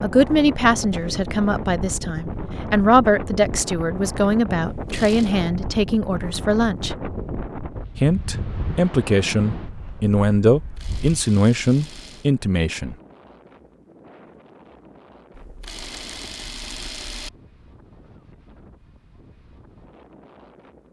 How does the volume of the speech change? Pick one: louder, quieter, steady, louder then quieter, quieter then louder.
steady.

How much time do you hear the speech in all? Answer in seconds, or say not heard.
12 s.